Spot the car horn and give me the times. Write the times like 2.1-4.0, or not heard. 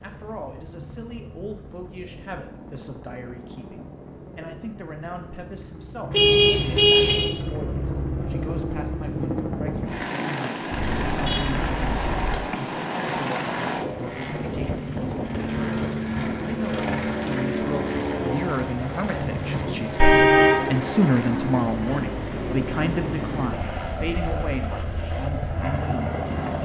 6.1-7.3, 10.7-12.4, 19.9-20.6.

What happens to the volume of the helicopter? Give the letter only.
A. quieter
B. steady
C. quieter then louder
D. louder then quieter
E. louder
E.